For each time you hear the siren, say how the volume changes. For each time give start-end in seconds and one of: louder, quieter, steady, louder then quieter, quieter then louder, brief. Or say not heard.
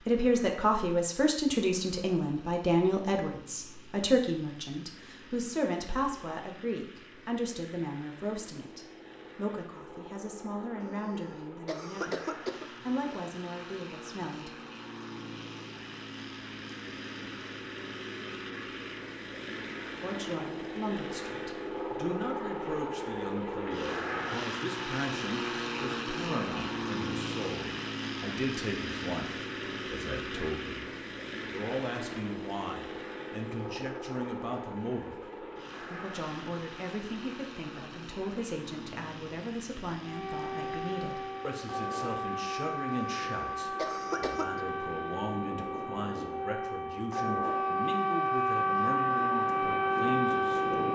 40.0-50.9 louder.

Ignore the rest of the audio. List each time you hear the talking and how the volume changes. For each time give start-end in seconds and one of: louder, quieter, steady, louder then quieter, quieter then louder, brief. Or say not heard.
0.0-14.5 quieter
20.0-50.9 steady.